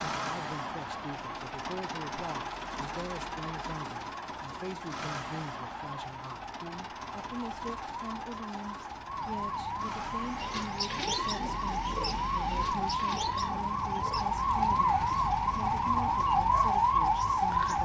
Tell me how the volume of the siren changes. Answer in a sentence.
The loudness of the siren goes up.